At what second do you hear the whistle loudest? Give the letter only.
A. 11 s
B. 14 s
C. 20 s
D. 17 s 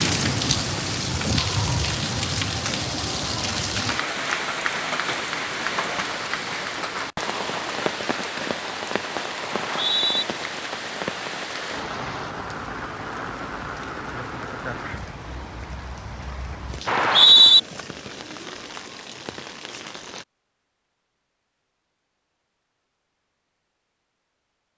D.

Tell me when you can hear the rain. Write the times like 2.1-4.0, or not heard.
0.0-20.2.